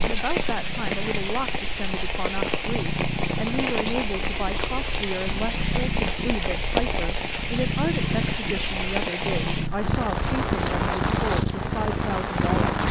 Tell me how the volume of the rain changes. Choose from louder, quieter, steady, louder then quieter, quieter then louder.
steady.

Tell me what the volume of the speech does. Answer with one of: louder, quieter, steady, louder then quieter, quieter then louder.
steady.